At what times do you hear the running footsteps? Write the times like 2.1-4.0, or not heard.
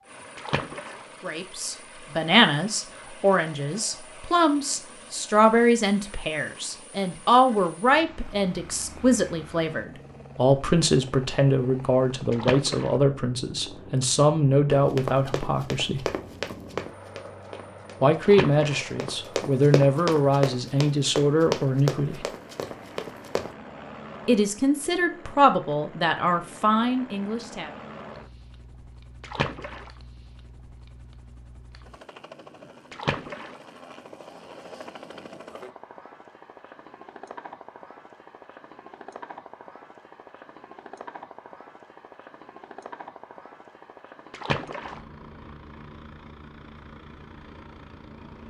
14.7-23.6.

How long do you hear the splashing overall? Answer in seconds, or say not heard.
4 s.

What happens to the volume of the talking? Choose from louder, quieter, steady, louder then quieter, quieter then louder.
steady.